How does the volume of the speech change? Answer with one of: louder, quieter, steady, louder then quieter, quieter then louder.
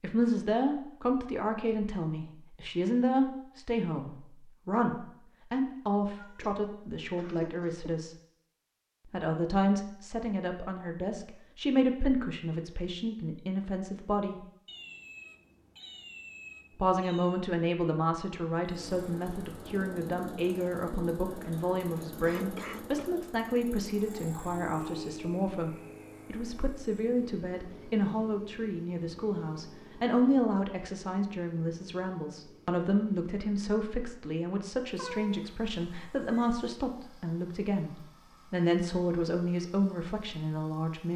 steady.